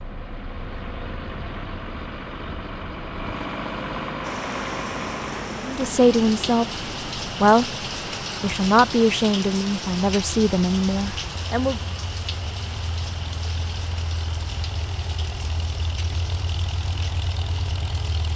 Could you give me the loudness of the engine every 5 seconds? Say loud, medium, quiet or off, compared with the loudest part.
loud, loud, medium, loud.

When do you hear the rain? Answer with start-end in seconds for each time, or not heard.
4.2-18.3.